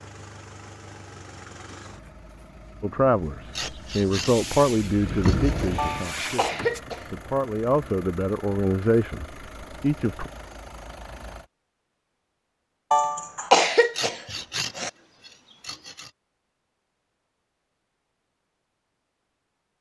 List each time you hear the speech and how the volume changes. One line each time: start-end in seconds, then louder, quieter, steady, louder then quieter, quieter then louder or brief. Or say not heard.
2.8-10.3 quieter then louder.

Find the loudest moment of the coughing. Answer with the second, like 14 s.
14 s.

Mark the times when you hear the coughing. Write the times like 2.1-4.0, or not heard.
5.8-7.2, 12.9-14.9.